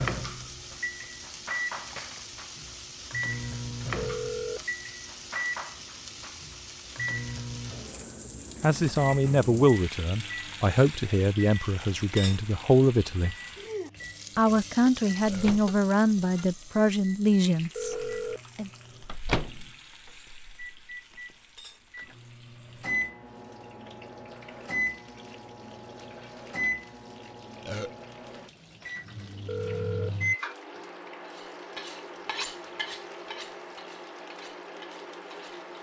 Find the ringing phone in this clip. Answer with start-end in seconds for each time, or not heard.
4.0-4.7, 17.8-18.4, 29.4-30.1.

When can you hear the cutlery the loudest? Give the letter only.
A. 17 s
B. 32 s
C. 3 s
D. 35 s
B.